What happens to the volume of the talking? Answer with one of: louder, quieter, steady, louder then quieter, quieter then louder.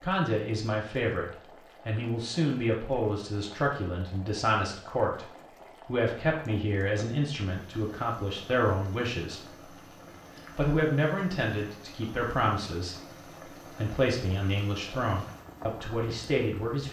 steady.